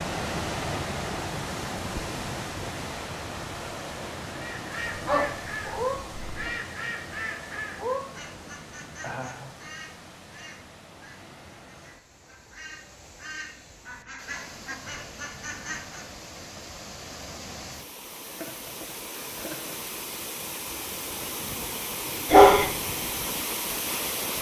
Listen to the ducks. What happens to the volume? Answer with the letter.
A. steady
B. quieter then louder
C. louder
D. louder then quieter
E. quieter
B.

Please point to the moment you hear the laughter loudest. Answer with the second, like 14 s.
9 s.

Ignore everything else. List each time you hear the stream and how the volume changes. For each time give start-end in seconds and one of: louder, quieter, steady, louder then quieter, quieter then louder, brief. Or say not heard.
0.0-24.3 quieter then louder.